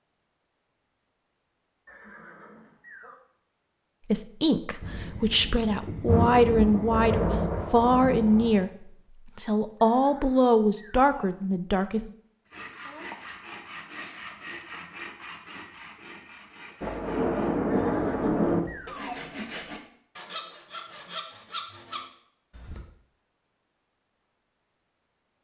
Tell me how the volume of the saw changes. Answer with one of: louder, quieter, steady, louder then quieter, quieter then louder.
quieter then louder.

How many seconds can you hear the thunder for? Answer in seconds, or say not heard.
6 s.